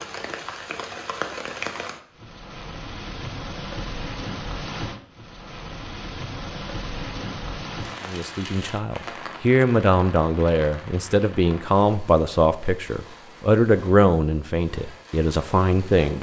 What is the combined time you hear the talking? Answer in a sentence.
You can hear the talking for 8 seconds altogether.